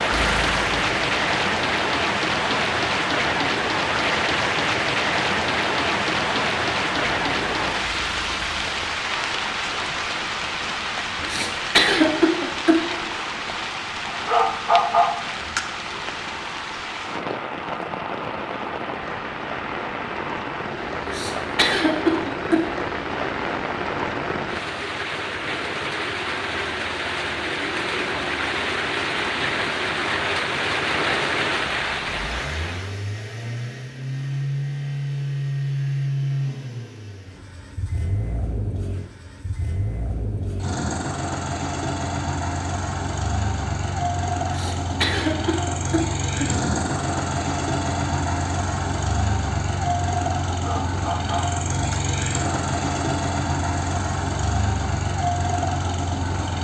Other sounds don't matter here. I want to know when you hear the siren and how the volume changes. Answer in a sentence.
The siren can't be heard in this clip.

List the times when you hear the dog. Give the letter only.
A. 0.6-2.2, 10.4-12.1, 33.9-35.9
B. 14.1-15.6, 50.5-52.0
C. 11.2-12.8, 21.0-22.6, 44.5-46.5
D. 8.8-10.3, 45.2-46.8
B.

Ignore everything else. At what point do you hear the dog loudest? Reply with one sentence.
The volume of the dog peaks at 15 seconds.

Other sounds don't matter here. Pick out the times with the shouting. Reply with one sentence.
The shouting can't be heard in this clip.